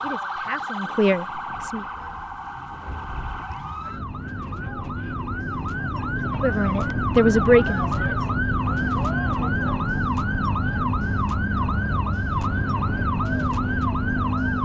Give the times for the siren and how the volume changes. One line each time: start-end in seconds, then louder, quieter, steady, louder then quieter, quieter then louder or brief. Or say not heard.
0.0-14.5 louder.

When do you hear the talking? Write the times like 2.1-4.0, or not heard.
0.0-1.8, 6.2-8.2.